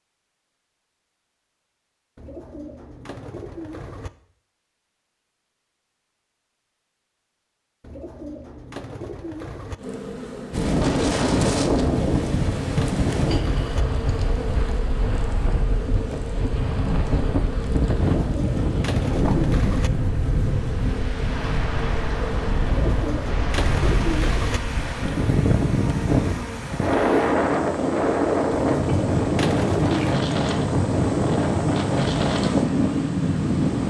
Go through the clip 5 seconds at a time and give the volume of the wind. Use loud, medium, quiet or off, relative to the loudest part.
off, off, loud, medium, medium, loud, loud.